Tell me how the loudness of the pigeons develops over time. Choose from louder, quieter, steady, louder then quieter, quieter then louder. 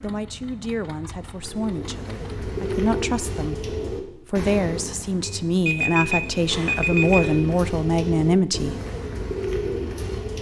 quieter then louder.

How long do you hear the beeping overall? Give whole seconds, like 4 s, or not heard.
2 s.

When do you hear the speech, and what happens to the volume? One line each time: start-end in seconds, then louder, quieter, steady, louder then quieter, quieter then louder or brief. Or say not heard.
0.0-8.8 louder.